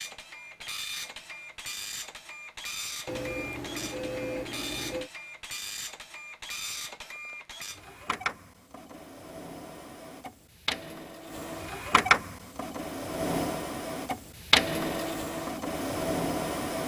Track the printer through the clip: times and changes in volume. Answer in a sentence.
The printer can be heard from 0.0 to 16.8 s, getting louder.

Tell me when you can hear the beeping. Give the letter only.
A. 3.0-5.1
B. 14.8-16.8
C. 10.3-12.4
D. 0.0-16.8
A.